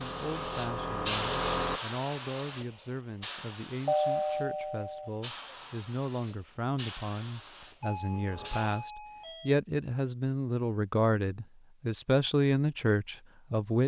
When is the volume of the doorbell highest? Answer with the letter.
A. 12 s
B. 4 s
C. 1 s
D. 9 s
B.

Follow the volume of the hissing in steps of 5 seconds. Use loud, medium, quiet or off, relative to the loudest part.
loud, medium, off.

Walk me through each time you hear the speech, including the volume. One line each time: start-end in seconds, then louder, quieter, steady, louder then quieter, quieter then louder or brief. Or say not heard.
0.0-13.8 louder.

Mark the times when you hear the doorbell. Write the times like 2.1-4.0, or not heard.
3.9-5.1, 7.8-9.6.